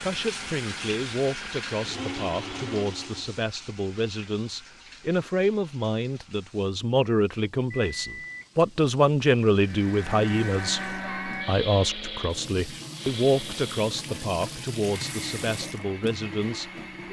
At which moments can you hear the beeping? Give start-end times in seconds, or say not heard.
7.7-8.5.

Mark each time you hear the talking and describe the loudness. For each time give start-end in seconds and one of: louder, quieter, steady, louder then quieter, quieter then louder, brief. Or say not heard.
0.0-17.0 louder then quieter.